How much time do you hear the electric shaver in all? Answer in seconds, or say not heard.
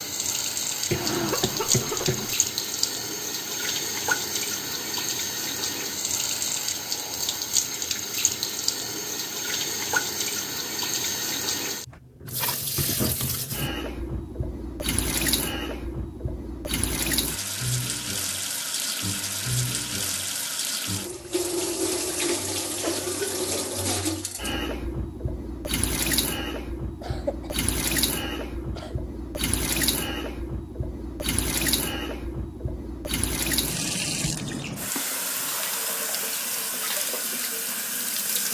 not heard.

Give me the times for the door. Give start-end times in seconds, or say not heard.
not heard.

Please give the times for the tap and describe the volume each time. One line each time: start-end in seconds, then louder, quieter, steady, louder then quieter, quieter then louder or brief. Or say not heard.
0.0-38.4 steady.